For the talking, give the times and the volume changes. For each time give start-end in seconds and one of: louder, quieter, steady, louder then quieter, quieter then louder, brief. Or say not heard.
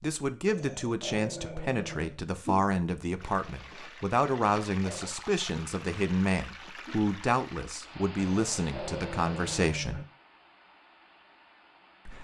0.0-10.1 steady.